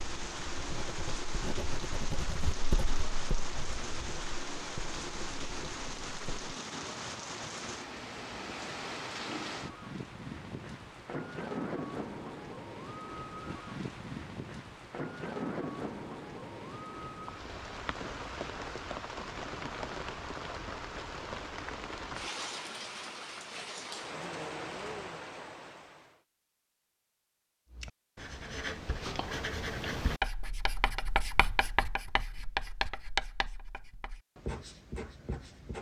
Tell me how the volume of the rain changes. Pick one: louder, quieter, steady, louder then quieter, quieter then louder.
steady.